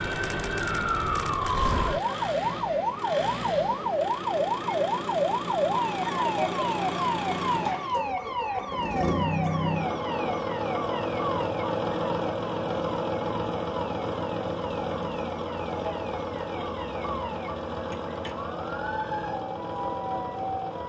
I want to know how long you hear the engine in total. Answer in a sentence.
You can hear the engine for 21 seconds altogether.